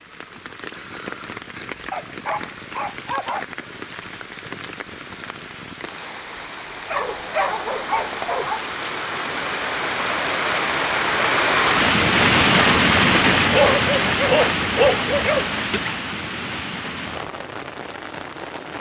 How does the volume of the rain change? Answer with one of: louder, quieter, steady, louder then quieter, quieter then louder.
louder then quieter.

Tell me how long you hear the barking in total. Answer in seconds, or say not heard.
5 s.